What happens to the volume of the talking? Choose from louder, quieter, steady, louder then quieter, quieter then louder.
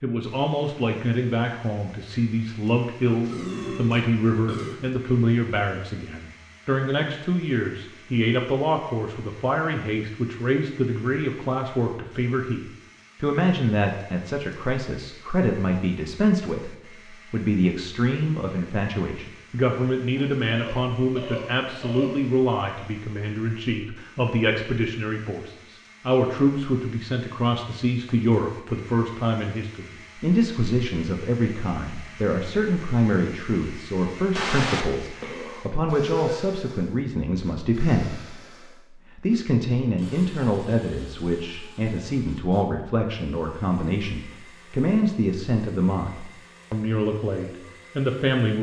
steady.